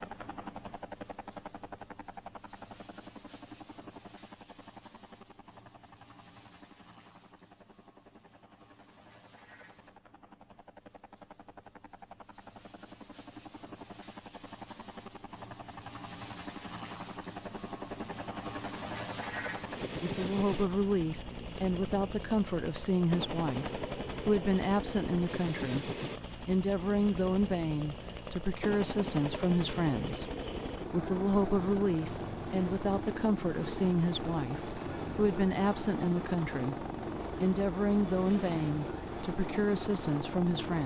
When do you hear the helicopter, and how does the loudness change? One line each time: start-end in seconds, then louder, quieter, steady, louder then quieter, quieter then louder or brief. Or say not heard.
0.0-40.8 louder.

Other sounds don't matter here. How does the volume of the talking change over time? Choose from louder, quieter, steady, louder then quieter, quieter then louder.
steady.